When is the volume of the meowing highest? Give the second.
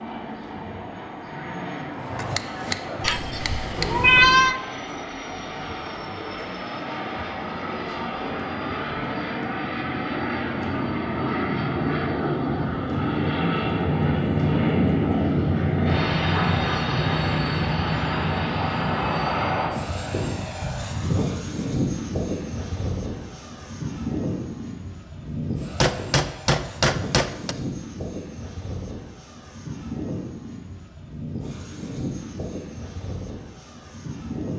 4 s.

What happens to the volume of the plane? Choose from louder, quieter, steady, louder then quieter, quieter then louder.
louder then quieter.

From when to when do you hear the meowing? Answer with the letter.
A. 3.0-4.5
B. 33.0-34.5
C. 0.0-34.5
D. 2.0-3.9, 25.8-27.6
A.